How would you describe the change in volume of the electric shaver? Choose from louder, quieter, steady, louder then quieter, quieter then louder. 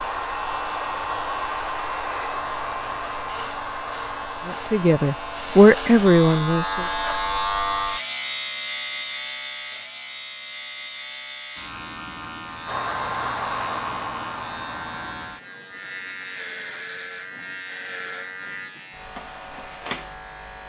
louder then quieter.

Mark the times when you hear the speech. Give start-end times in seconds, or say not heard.
4.5-6.8.